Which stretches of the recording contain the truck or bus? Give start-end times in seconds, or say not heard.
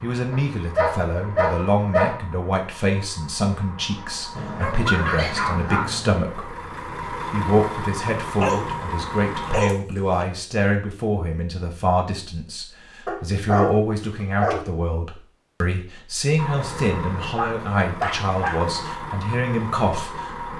0.0-9.7, 16.4-20.5.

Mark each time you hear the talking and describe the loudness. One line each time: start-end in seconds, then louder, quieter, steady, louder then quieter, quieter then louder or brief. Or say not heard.
0.0-20.5 steady.